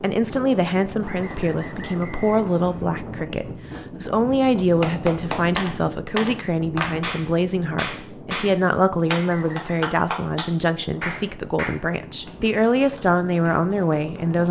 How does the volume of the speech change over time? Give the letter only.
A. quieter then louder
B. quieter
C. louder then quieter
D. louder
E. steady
E.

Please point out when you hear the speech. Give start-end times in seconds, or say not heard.
0.0-14.4.